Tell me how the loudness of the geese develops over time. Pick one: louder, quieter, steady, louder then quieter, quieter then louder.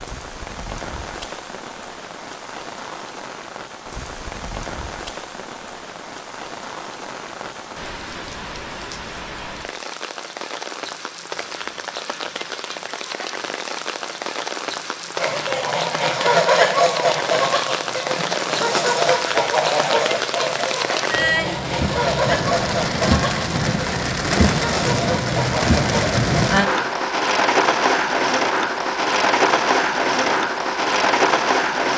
quieter.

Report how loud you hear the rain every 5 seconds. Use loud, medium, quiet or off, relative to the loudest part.
quiet, quiet, medium, medium, loud, loud, loud.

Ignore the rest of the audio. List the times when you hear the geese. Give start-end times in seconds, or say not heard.
15.2-26.9.